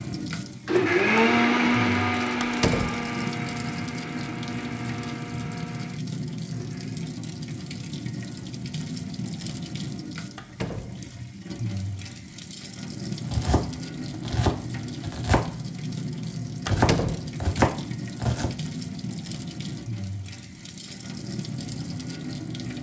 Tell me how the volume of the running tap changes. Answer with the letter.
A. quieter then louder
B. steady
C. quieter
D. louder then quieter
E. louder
B.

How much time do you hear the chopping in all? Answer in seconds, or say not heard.
4 s.